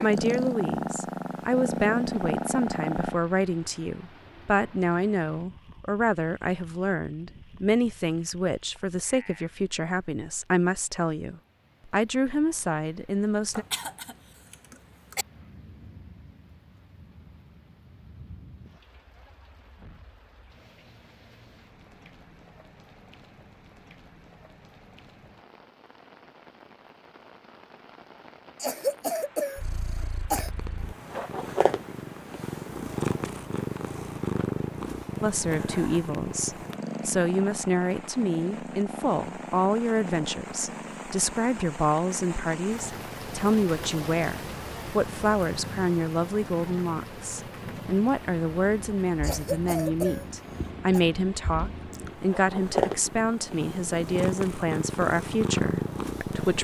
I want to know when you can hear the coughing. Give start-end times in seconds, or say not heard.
13.5-15.2, 28.6-30.5, 49.2-51.0.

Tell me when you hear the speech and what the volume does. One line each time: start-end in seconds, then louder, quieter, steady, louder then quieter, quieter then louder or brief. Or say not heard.
0.0-13.7 steady
35.2-56.5 steady.